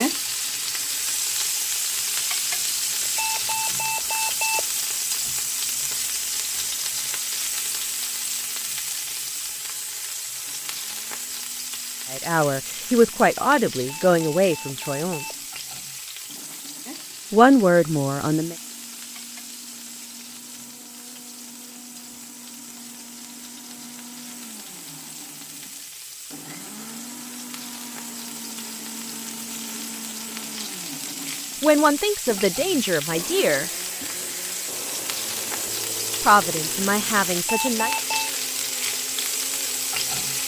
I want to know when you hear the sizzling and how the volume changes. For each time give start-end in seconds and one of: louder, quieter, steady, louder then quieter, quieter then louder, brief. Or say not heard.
0.0-40.4 quieter then louder.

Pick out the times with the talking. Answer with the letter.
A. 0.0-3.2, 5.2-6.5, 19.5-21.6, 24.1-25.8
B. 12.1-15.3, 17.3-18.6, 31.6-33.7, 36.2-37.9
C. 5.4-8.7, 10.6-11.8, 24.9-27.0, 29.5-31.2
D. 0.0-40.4
B.